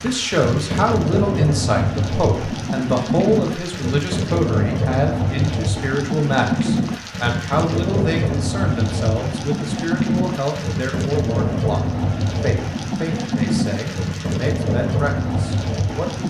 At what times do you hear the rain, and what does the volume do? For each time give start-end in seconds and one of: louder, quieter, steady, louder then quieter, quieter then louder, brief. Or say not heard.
0.0-16.2 steady.